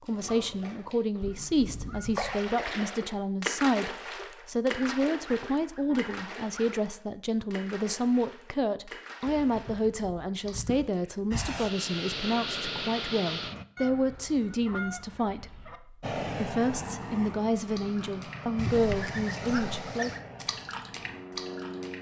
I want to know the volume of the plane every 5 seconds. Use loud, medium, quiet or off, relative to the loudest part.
off, off, loud, loud, medium.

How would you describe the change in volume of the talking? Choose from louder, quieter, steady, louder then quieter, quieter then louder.
steady.